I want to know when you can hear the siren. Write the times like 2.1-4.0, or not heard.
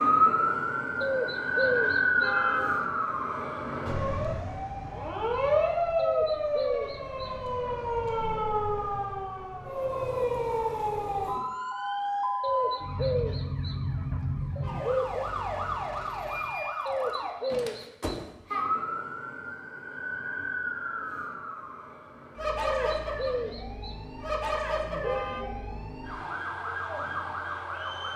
0.0-28.1.